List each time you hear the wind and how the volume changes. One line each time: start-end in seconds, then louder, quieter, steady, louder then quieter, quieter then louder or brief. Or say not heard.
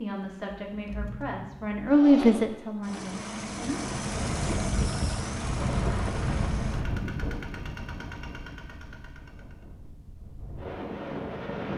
3.7-11.7 quieter then louder.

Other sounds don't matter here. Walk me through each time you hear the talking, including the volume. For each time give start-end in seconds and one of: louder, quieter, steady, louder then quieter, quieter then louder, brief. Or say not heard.
0.0-4.0 louder then quieter.